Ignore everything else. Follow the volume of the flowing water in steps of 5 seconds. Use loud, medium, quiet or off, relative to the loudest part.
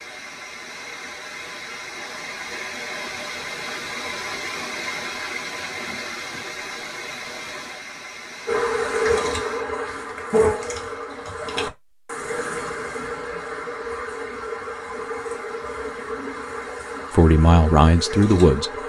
loud, loud, off, off.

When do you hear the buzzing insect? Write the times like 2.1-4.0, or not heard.
8.4-18.8.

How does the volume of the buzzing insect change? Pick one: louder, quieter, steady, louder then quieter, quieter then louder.
quieter.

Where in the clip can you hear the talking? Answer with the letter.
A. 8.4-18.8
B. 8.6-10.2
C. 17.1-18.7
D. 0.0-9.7
C.